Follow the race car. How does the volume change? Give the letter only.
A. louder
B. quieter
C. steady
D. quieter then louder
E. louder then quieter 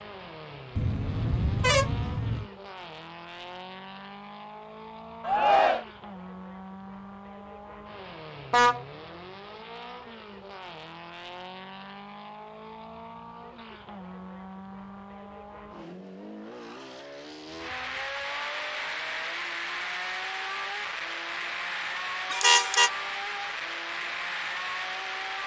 A.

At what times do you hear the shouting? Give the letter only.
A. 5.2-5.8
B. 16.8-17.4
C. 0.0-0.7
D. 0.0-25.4
A.